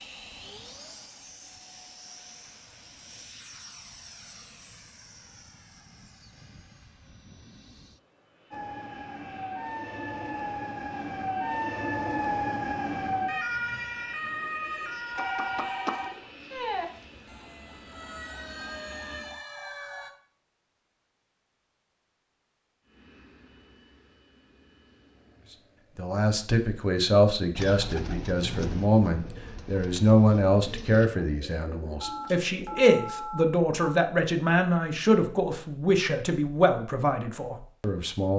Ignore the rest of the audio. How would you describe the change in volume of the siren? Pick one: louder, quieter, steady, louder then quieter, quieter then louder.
louder then quieter.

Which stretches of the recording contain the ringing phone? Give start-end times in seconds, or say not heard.
15.2-16.3, 32.0-34.0.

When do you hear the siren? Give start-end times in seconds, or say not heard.
8.5-20.1.